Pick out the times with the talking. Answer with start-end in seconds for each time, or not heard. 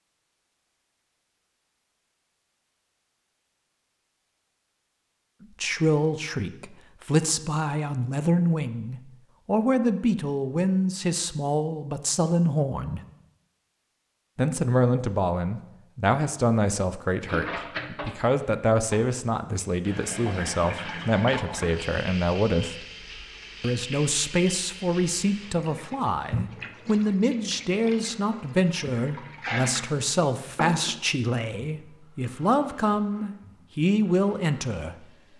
5.6-13.0, 14.3-22.9, 23.6-35.0.